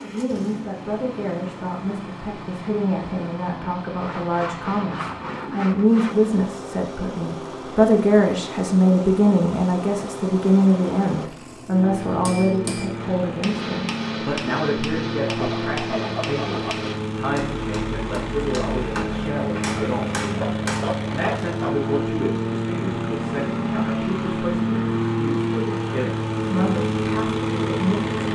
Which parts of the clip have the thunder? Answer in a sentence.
You can't hear the thunder here.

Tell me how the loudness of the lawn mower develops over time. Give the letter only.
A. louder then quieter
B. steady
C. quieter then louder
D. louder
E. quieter
D.